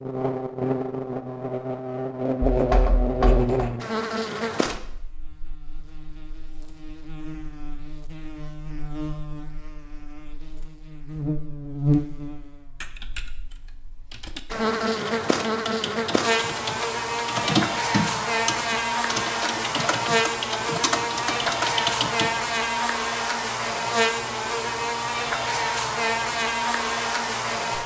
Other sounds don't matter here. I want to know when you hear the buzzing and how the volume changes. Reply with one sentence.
The buzzing can be heard from 0.0 to 27.8 s, getting quieter then louder.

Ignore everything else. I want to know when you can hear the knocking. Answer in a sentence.
You can hear the knocking from 2.5 to 3.7 s.